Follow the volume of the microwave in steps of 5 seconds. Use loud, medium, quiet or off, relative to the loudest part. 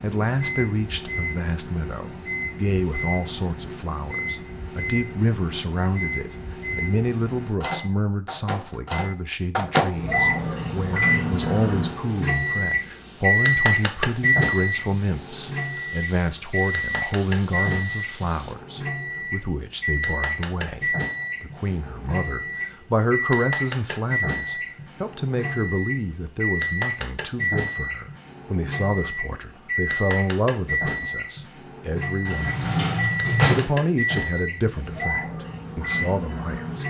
medium, medium, loud, medium, medium, medium, medium, medium.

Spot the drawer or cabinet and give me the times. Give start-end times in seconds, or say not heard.
32.2-33.8.